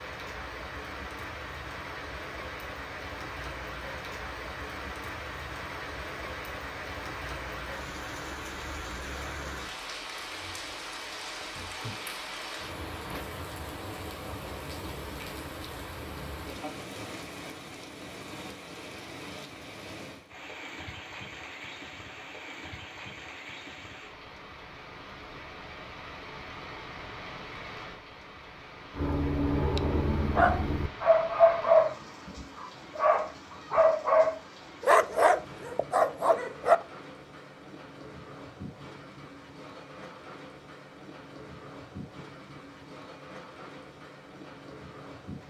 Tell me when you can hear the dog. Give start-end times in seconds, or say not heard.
28.9-36.8.